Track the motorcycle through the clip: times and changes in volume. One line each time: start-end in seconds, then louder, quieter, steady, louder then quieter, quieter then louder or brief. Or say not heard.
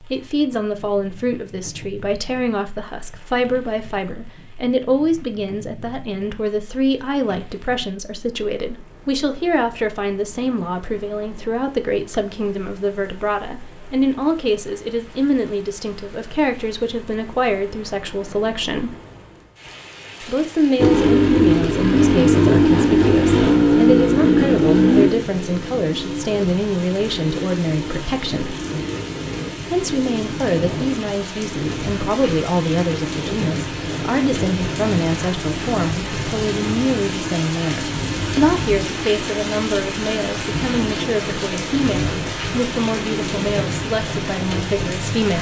20.8-43.5 quieter.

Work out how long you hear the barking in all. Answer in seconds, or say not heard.
not heard.